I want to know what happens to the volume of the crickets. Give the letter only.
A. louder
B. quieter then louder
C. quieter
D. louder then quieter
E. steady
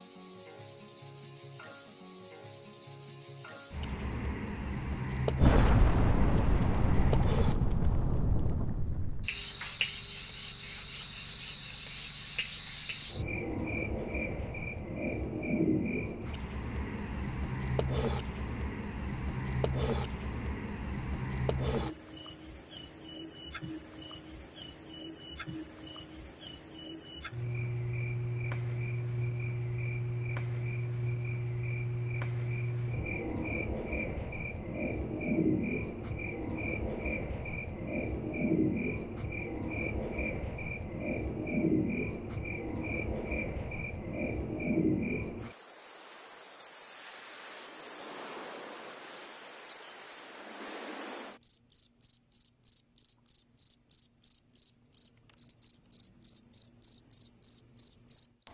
E.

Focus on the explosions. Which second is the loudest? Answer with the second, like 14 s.
6 s.